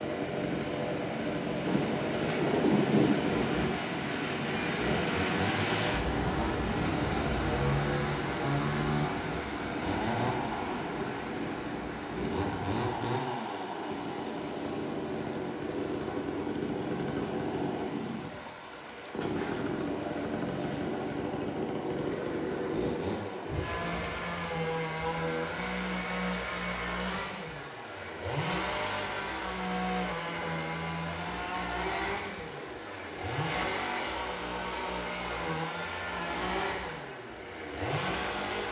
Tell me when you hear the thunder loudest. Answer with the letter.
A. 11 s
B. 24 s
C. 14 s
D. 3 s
D.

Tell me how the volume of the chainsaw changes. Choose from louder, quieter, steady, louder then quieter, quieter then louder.
steady.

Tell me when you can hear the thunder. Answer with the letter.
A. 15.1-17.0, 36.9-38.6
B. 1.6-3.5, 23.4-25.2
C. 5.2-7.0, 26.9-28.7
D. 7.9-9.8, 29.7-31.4
B.